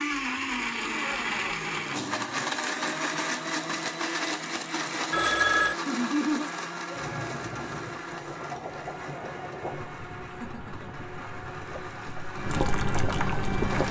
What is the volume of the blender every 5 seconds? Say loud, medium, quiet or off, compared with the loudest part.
loud, medium, medium.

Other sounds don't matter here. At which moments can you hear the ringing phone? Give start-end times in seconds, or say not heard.
5.1-5.8.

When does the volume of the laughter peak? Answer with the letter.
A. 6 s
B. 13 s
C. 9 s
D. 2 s
A.